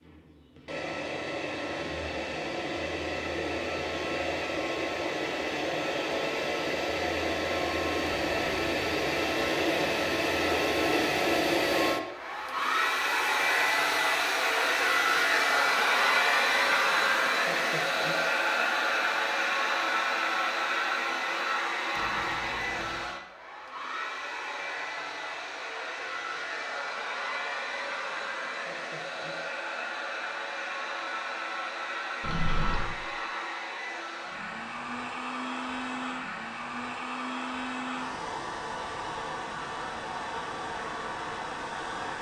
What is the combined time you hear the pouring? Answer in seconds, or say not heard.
2 s.